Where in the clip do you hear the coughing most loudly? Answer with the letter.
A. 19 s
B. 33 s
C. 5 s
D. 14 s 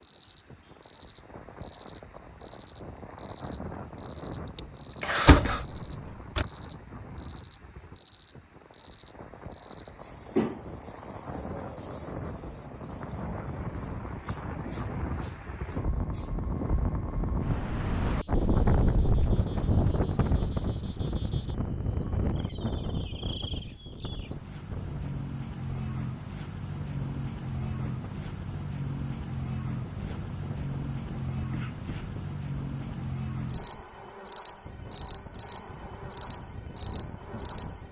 C.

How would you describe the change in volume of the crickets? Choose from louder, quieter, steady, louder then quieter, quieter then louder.
quieter then louder.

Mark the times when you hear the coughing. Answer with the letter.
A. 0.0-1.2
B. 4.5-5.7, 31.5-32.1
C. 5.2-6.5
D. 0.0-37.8
B.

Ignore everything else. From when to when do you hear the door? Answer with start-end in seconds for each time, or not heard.
5.2-6.5.